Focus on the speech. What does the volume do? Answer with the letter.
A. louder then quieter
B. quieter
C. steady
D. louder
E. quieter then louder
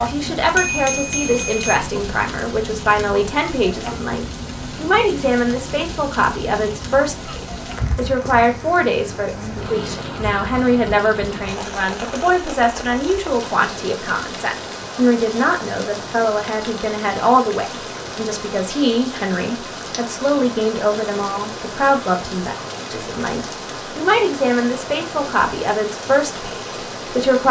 C.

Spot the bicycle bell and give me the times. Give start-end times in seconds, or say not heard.
0.4-1.8.